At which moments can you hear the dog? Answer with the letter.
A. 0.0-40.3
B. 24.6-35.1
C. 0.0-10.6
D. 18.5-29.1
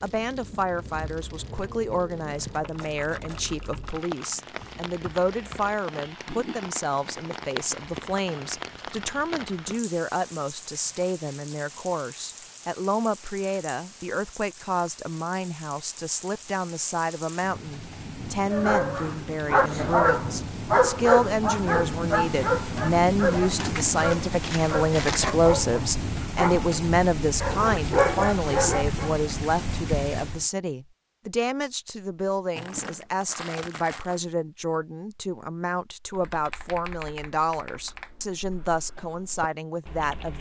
D.